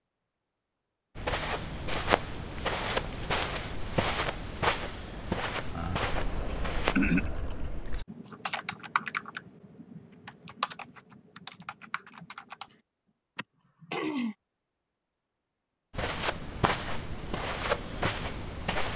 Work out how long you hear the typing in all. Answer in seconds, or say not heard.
7 s.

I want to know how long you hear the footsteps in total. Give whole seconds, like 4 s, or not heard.
9 s.